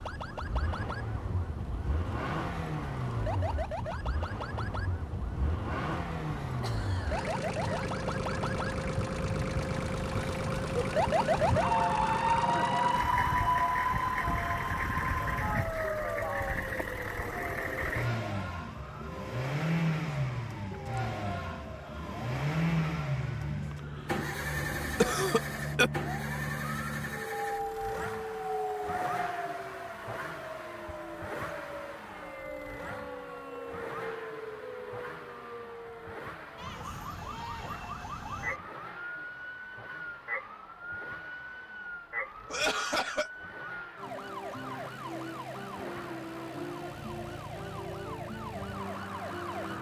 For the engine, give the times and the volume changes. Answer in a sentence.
The engine can be heard from 0.0 to 49.7 s, getting quieter.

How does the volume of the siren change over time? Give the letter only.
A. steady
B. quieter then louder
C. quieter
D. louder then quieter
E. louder
D.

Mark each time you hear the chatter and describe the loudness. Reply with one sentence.
The chatter can't be heard in this clip.